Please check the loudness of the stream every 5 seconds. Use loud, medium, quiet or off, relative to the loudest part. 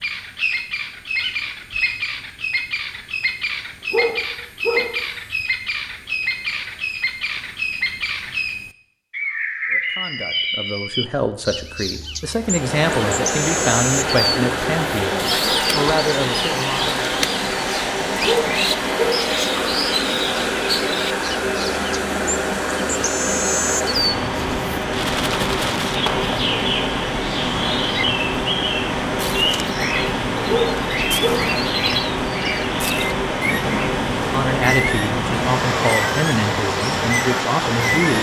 off, off, loud, loud, loud, loud, loud, loud.